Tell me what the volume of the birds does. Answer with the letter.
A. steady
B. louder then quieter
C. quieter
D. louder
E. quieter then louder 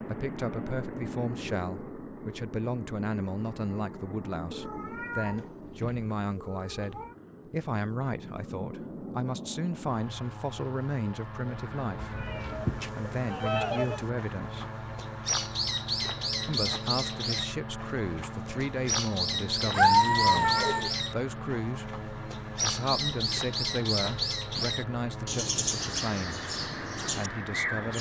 A.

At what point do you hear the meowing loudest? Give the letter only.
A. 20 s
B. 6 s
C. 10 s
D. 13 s
A.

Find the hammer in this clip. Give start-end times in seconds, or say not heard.
not heard.